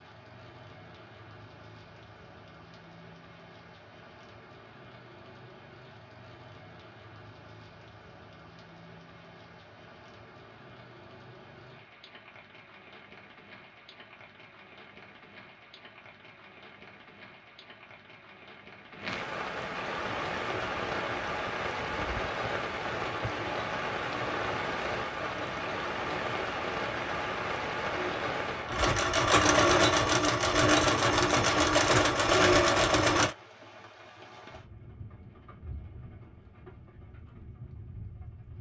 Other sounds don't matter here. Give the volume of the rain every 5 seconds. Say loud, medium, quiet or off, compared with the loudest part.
quiet, quiet, quiet, medium, loud, loud, quiet, quiet.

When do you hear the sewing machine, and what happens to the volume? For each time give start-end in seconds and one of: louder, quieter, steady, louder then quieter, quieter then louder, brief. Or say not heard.
19.9-33.4 louder.